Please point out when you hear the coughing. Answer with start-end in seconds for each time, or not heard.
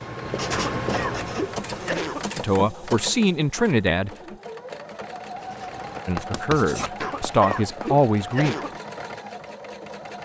0.5-2.3, 7.0-8.8.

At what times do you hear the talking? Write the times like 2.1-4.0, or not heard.
2.4-4.1, 6.0-8.6.